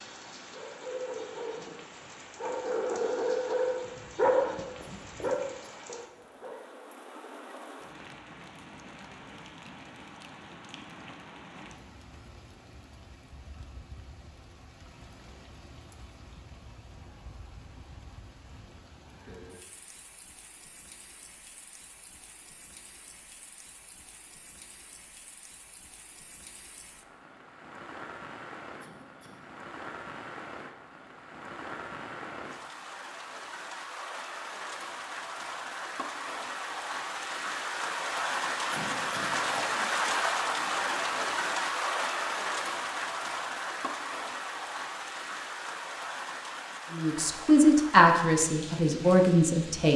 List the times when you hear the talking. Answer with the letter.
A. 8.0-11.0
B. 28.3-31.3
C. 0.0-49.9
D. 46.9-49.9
D.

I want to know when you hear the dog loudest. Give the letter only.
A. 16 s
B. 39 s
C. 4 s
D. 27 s
C.